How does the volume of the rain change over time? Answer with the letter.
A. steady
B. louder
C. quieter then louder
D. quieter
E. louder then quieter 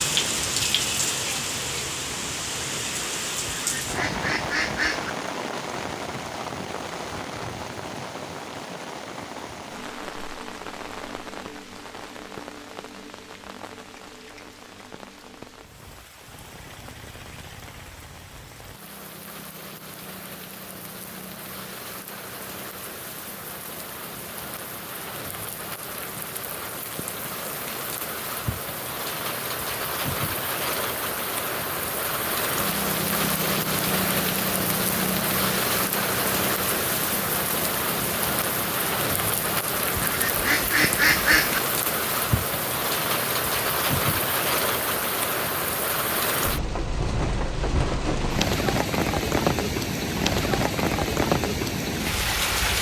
C.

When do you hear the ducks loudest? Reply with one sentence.
The loudest moment of the ducks is at 41 seconds.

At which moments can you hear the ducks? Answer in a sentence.
You can hear the ducks from 3.5 to 5.1 s and from 40.0 to 41.6 s.